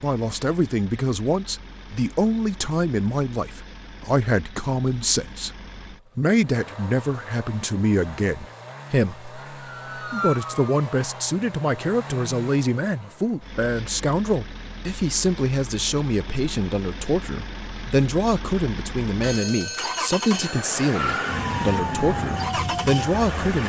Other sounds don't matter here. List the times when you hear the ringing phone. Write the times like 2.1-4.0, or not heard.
19.2-20.7.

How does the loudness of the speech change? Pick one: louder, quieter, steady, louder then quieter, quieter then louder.
steady.